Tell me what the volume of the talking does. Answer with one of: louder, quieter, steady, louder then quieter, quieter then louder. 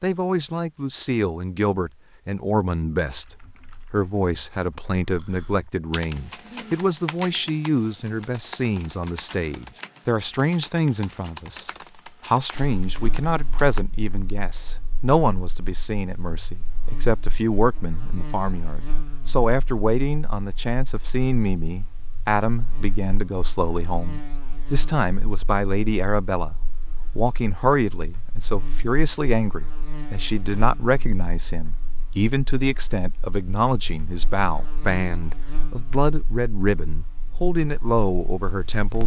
steady.